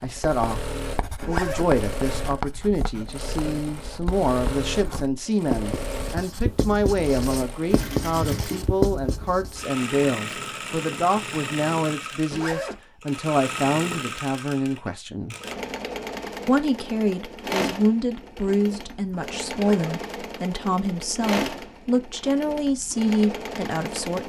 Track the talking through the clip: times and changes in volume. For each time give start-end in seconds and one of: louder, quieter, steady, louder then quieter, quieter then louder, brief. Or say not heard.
0.0-15.3 steady
16.4-24.2 steady.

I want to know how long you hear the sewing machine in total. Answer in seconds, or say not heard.
24 s.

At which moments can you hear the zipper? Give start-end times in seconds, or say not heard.
1.2-1.7, 12.3-12.8, 19.5-19.9.